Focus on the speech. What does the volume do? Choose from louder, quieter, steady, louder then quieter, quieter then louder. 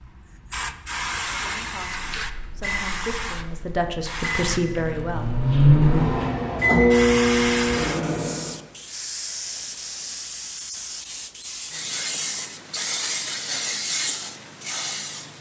louder.